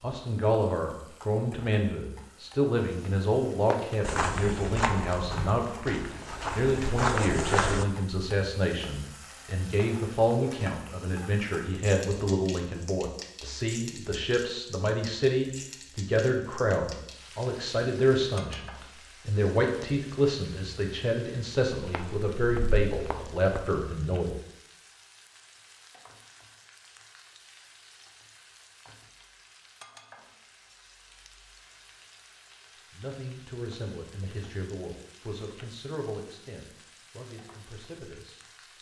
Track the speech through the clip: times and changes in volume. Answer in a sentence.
You can hear the speech from 0.0 to 24.4 s, at a steady volume; and from 32.9 to 38.5 s, getting quieter.